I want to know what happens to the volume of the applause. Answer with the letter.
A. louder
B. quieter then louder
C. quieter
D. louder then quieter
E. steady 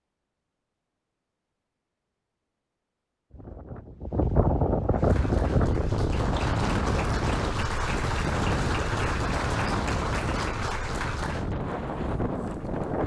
A.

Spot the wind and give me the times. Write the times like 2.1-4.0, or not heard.
3.3-13.0.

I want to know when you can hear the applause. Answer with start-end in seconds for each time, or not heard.
4.9-11.6.